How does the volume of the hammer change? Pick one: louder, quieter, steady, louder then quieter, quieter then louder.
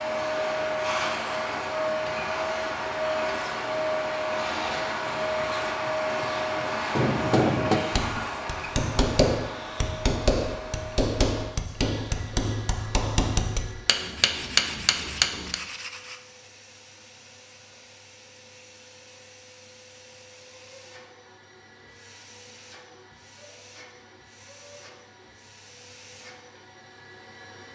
steady.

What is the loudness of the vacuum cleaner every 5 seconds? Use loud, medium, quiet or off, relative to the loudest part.
loud, loud, quiet, quiet, quiet, quiet.